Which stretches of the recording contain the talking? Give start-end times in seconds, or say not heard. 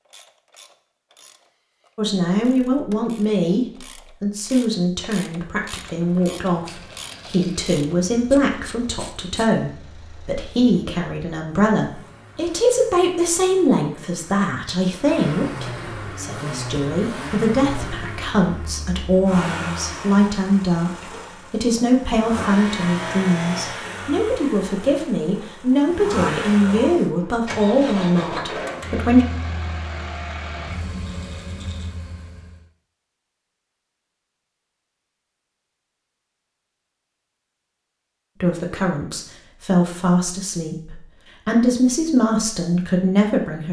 1.9-29.2, 38.4-43.6.